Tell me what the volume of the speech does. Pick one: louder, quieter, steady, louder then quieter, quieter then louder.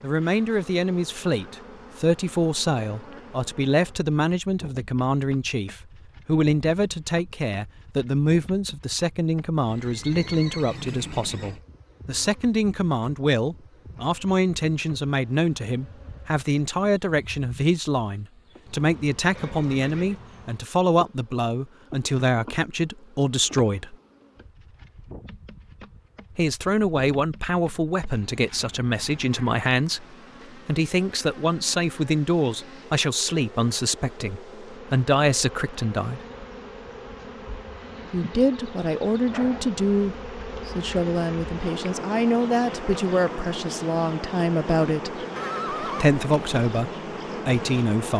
steady.